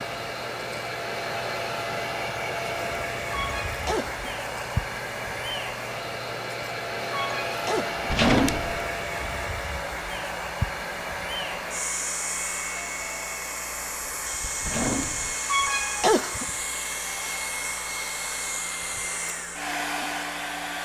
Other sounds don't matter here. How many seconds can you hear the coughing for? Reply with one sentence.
You can hear the coughing for 3 seconds altogether.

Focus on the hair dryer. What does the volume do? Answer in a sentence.
The loudness of the hair dryer stays about the same.